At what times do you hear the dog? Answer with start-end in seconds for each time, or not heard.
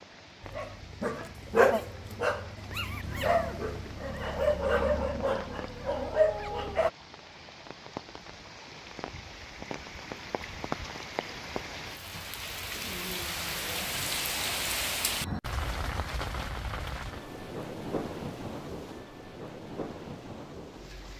0.4-6.9.